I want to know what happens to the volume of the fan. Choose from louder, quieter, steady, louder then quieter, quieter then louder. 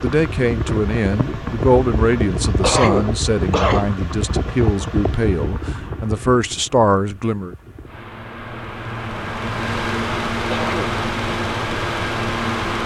quieter then louder.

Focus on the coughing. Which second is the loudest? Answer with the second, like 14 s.
3 s.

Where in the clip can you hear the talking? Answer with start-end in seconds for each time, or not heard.
0.0-7.5.